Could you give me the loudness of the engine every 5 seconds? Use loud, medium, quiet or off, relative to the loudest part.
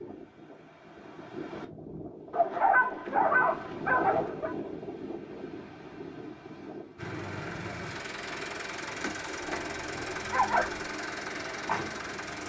off, loud, loud.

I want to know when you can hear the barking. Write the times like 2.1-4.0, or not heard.
2.3-4.5, 9.4-10.9.